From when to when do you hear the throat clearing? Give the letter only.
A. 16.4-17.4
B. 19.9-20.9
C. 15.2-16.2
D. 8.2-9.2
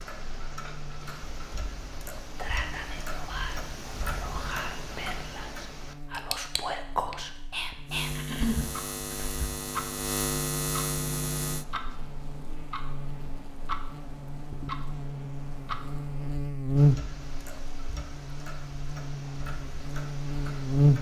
D.